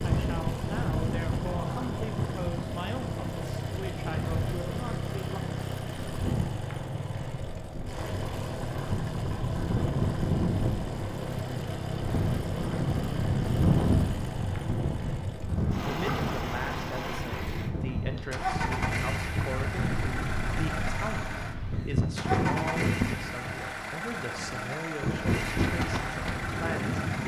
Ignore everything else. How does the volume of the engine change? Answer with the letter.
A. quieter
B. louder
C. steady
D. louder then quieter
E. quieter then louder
C.